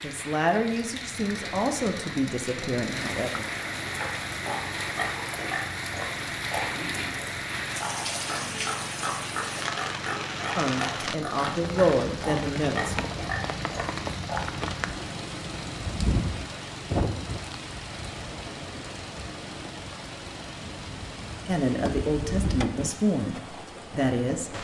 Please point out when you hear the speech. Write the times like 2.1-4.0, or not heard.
0.0-3.5, 10.6-13.1, 21.4-24.5.